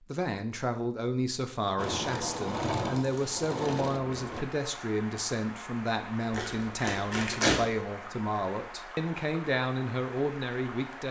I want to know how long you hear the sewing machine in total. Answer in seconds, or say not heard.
3 s.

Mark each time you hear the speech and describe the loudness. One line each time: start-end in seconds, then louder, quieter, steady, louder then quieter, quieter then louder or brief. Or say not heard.
0.1-11.0 steady.